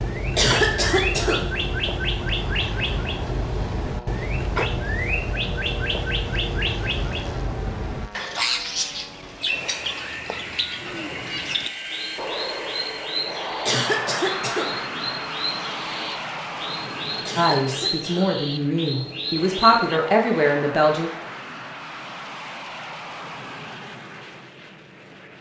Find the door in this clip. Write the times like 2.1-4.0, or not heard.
not heard.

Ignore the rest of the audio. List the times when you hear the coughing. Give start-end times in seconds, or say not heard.
0.3-1.4, 13.7-14.7, 17.2-18.3.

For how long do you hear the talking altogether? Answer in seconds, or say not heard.
4 s.